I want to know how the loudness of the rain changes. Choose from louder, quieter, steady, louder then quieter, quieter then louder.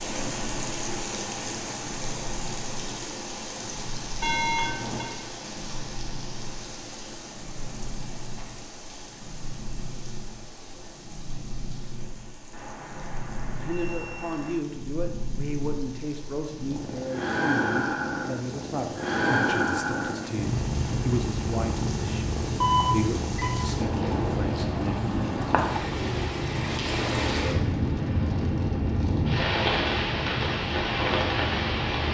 quieter then louder.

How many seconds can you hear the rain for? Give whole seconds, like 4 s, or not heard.
32 s.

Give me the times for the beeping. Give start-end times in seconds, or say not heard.
4.2-5.0, 12.5-14.6, 22.6-23.6.